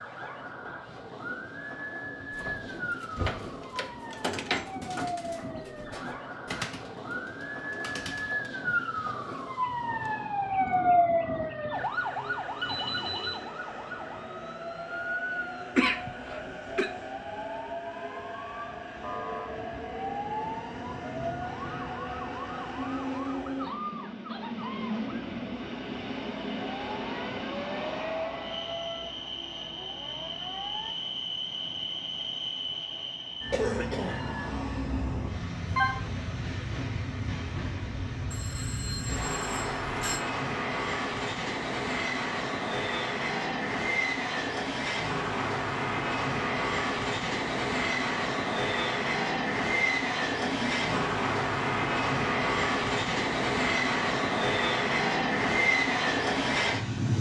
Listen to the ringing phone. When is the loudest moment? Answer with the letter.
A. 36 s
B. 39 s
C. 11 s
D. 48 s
A.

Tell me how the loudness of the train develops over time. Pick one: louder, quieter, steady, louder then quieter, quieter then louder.
louder.